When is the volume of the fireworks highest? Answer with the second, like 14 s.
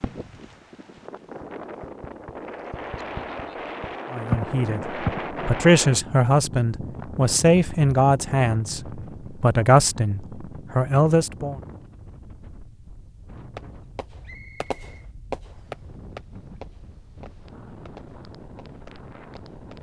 4 s.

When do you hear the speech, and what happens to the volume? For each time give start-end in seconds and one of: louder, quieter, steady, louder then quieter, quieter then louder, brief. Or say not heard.
4.1-11.6 steady.